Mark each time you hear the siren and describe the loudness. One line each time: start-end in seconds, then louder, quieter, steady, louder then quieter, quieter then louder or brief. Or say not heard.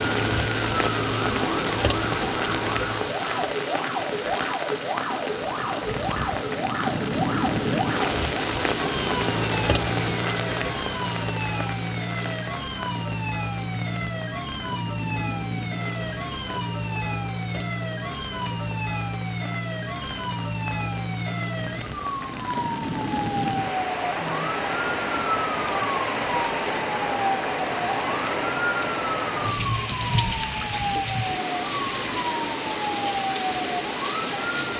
0.0-34.7 steady.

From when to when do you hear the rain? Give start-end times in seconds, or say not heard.
0.0-34.7.